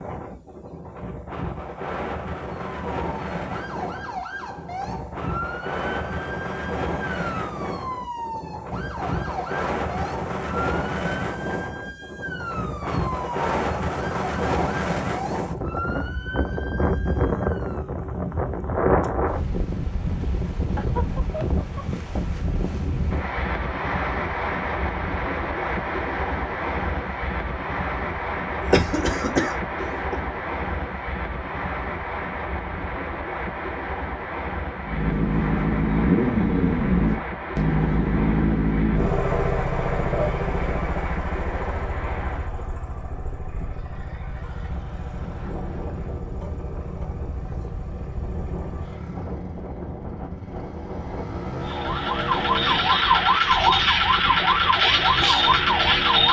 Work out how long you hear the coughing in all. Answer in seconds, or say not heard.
2 s.